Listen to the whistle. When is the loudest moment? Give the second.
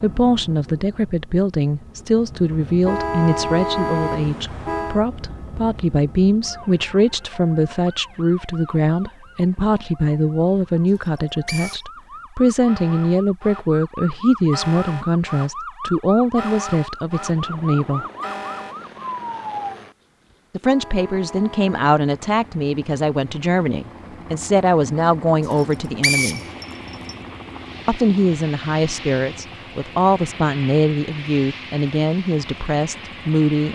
26 s.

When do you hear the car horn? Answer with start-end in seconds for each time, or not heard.
2.9-5.0, 20.6-21.8.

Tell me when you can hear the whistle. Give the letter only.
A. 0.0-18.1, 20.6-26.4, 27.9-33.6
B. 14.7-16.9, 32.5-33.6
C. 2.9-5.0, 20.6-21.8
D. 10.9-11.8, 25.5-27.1
D.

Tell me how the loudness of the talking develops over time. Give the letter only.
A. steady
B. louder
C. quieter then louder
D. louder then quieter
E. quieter
A.